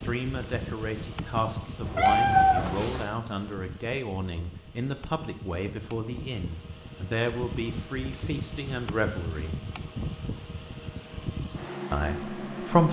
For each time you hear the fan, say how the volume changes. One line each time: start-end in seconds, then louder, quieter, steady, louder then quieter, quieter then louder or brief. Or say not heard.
0.0-12.8 quieter then louder.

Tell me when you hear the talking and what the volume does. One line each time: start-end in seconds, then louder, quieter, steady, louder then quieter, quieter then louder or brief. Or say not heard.
0.0-9.7 steady
11.9-12.8 brief.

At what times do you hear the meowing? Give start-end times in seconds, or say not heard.
1.8-3.0.